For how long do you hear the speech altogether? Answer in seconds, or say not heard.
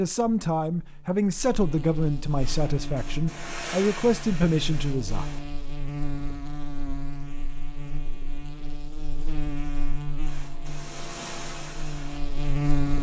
5 s.